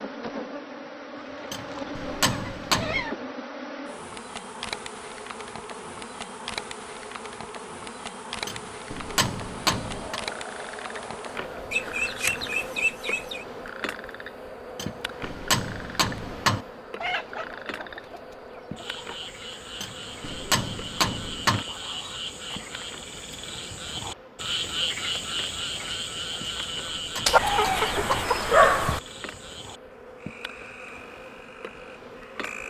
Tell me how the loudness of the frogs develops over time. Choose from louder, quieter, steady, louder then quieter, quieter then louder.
louder then quieter.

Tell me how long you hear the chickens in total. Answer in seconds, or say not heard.
8 s.